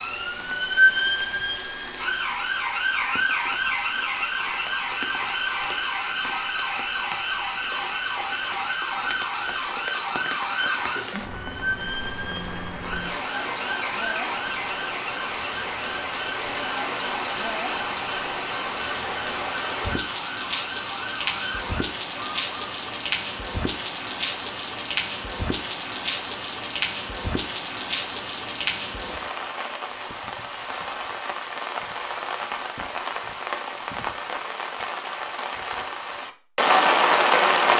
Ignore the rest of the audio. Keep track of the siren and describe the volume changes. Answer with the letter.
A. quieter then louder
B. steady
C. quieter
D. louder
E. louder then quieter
C.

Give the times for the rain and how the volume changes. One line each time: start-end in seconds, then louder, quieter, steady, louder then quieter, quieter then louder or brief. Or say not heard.
0.0-37.7 louder.